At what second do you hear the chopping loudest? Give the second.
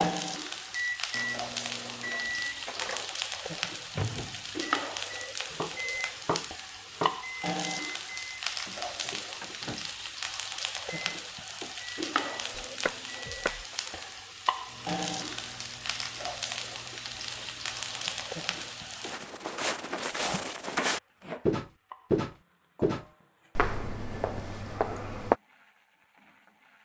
7 s.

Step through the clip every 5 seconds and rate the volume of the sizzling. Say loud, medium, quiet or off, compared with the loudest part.
loud, loud, loud, loud, quiet, quiet.